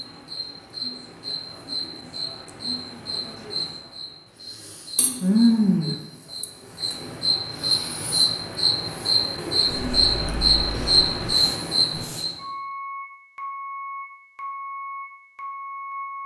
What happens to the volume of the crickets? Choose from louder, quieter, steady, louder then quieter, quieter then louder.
louder.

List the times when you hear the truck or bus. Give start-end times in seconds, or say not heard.
9.8-16.2.